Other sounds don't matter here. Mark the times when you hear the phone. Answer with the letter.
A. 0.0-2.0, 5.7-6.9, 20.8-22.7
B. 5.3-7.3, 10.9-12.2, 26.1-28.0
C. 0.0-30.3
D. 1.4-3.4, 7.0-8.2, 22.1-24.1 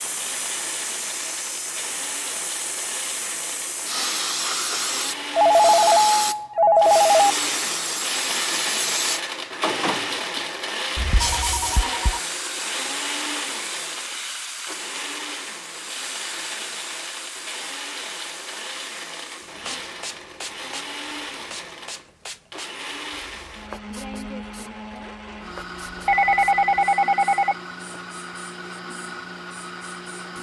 B.